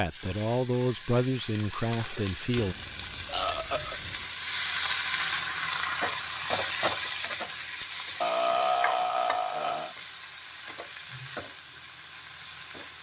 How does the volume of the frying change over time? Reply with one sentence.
The loudness of the frying goes up, then down.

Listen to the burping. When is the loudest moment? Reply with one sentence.
The volume of the burping peaks at 9 seconds.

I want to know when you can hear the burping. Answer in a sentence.
The burping can be heard from 2.5 to 4.2 s and from 8.2 to 9.9 s.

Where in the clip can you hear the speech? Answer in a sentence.
The speech can be heard from 0.0 to 2.8 s.